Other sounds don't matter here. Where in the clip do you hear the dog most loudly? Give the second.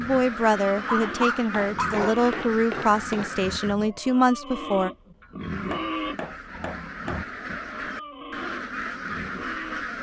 1 s.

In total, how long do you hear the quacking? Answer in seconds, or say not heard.
8 s.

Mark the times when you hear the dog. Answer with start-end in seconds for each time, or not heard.
0.8-2.6.